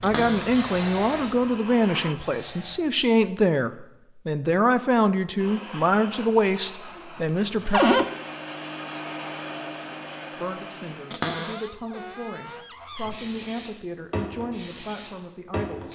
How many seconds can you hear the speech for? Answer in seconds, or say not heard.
13 s.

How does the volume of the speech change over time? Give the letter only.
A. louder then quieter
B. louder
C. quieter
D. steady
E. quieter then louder
C.